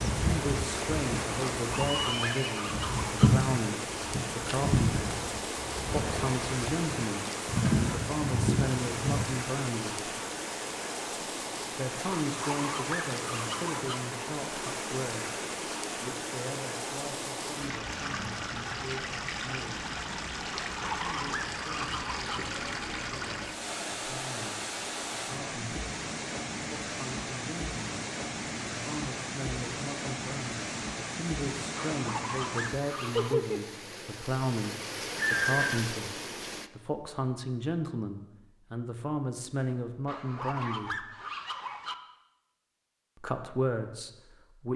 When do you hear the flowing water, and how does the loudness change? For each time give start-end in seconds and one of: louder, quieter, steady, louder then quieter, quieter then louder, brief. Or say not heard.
0.0-36.7 steady.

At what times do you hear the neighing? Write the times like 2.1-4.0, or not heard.
1.9-2.8, 35.1-35.9.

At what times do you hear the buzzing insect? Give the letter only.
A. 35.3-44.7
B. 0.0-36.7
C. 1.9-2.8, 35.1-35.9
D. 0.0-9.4
D.